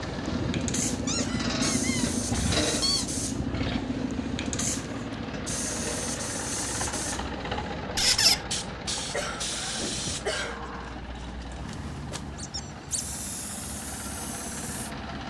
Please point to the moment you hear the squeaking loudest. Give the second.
8 s.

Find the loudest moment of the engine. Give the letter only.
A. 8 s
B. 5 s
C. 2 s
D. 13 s
C.